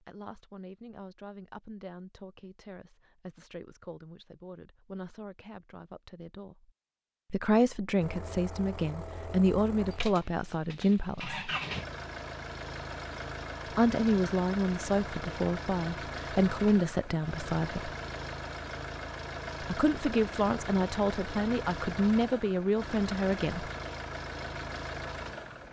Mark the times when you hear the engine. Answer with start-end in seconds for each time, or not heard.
8.0-25.6.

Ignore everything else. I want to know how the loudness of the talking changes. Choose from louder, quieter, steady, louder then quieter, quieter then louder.
louder.